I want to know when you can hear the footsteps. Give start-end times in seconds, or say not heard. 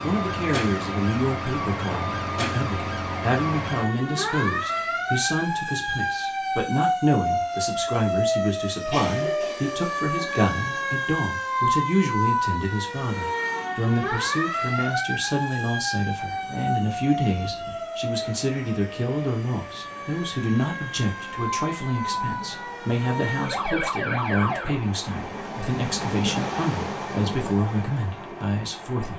not heard.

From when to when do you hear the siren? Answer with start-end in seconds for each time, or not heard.
0.0-24.8.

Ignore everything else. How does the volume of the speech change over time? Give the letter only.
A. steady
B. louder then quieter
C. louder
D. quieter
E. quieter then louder
A.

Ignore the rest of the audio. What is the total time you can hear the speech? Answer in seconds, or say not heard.
29 s.